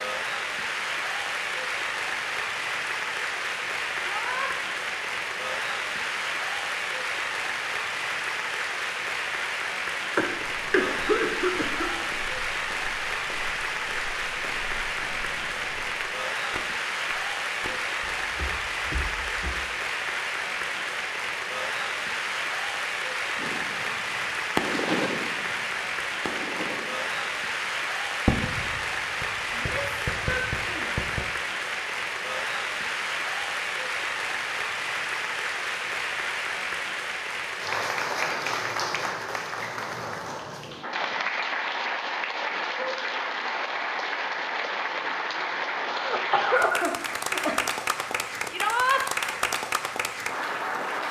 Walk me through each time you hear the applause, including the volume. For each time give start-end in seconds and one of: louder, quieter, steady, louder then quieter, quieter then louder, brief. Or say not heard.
0.0-51.0 steady.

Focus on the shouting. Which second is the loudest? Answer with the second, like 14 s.
49 s.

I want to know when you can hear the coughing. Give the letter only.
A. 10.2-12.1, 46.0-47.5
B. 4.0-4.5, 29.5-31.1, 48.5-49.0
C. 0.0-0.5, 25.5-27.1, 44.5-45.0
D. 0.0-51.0
A.